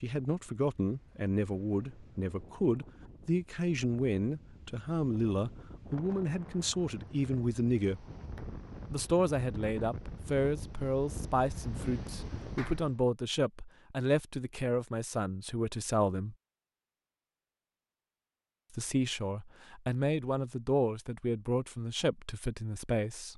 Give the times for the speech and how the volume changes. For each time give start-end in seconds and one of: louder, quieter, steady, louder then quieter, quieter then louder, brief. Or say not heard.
0.0-8.1 steady
8.9-16.4 steady
18.7-23.3 louder then quieter.